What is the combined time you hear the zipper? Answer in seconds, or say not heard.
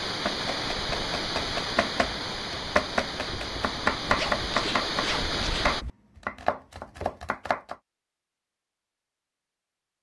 2 s.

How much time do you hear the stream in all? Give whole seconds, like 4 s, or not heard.
6 s.